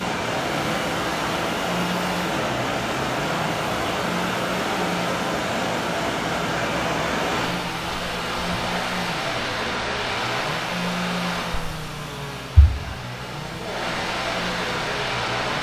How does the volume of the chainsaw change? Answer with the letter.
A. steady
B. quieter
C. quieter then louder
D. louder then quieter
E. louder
A.